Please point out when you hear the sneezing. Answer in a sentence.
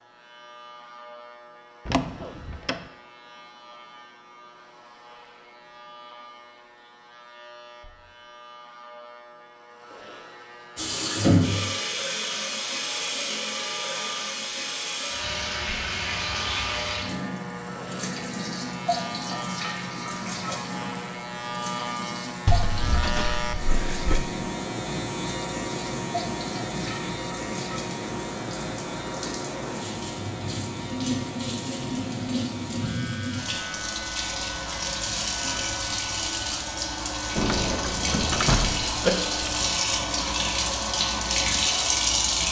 You can hear the sneezing from 39.0 to 39.6 s.